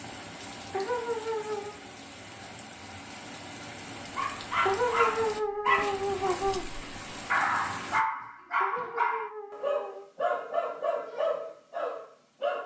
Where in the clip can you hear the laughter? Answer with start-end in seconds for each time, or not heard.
0.7-1.8, 4.7-6.7, 8.6-10.1.